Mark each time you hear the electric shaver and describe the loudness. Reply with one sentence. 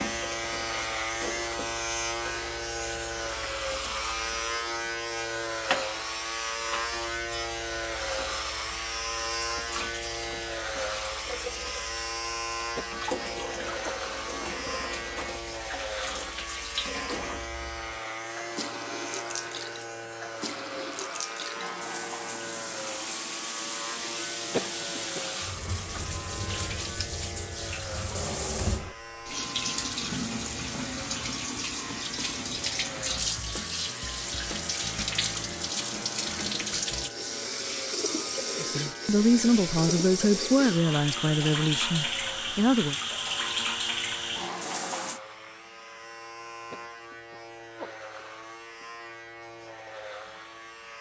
You can hear the electric shaver from 0.0 to 50.9 s, getting quieter.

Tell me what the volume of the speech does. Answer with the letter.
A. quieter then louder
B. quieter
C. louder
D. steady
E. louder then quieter
B.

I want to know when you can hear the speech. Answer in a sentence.
The speech can be heard from 38.6 to 43.0 s.